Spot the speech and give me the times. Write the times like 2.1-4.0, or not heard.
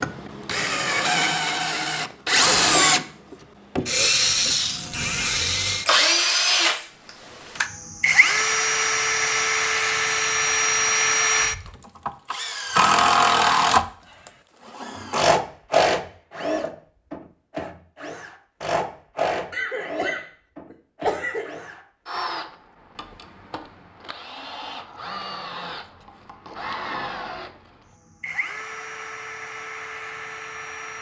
not heard.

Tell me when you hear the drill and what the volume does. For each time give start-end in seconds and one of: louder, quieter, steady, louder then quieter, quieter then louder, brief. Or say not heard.
0.0-13.8 steady
14.8-30.9 quieter.